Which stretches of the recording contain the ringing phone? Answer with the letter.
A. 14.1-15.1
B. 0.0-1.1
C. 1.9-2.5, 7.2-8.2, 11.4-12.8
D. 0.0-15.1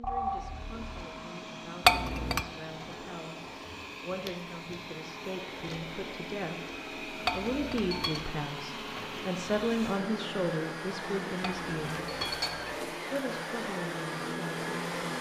B.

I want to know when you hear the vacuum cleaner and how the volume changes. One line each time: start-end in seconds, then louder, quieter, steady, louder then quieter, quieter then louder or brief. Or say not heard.
0.0-15.1 louder.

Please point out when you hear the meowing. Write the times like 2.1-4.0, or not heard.
not heard.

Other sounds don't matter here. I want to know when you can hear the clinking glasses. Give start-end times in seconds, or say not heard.
1.9-2.5, 7.2-8.2, 11.4-12.8.